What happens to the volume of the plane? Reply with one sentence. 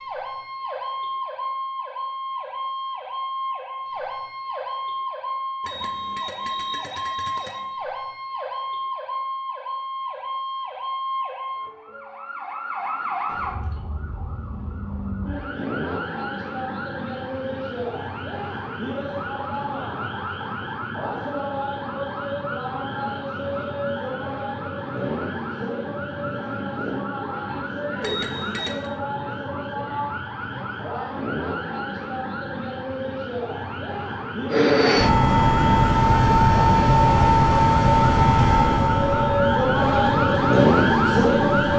The volume of the plane goes down.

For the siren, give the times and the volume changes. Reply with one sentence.
The siren can be heard from 0.0 to 41.7 s, getting louder.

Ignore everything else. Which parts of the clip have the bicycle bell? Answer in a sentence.
The bicycle bell can be heard from 5.7 to 7.7 s and from 28.0 to 28.9 s.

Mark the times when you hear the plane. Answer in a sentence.
The plane can be heard from 34.5 to 41.7 s.